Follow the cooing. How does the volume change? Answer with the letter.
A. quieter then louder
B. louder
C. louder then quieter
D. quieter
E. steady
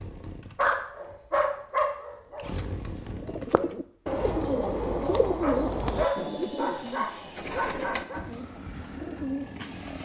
D.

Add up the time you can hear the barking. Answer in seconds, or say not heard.
5 s.